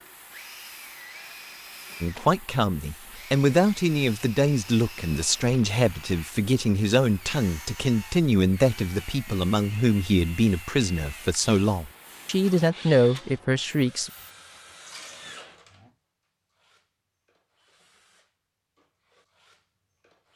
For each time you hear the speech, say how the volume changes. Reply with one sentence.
The speech can be heard from 2.0 to 14.1 s, at a steady volume.